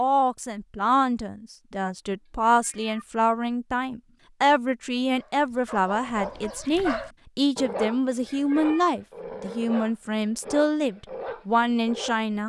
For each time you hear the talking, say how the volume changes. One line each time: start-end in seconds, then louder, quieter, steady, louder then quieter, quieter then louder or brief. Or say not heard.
0.0-12.4 steady.